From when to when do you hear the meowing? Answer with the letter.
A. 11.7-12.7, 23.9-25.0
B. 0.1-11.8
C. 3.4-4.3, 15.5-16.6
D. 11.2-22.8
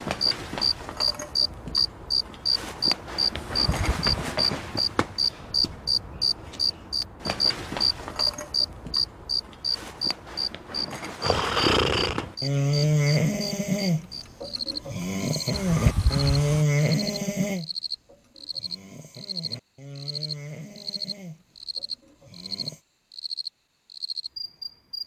C.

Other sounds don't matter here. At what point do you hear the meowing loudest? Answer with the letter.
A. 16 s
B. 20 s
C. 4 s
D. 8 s
A.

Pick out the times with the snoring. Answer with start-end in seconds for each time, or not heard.
11.2-22.8.